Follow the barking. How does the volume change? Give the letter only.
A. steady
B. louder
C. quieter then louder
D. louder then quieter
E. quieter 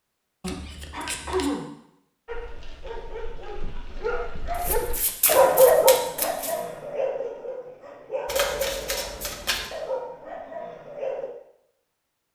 D.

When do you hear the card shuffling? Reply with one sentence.
The card shuffling can be heard from 0.4 to 1.5 s, from 4.5 to 6.6 s and from 8.2 to 9.7 s.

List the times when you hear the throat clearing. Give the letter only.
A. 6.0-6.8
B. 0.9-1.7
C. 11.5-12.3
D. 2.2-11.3
B.